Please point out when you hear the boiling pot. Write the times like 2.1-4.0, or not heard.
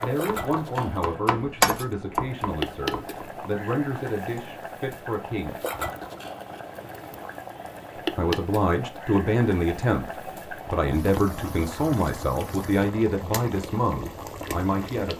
0.0-15.1.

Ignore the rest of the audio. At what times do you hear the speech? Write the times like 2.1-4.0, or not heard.
0.0-5.5, 8.2-10.1, 10.7-15.1.